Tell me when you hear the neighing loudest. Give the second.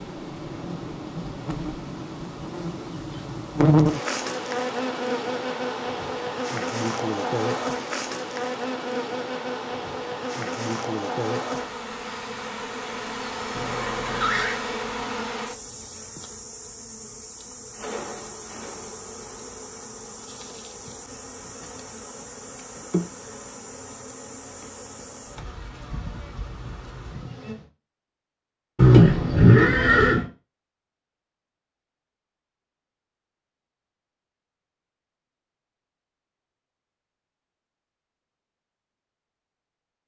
29 s.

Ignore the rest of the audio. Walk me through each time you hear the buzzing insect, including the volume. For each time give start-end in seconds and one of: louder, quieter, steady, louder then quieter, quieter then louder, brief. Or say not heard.
0.0-27.7 quieter.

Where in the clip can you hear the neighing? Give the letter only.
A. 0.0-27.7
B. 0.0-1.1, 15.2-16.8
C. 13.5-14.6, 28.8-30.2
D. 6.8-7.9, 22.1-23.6
C.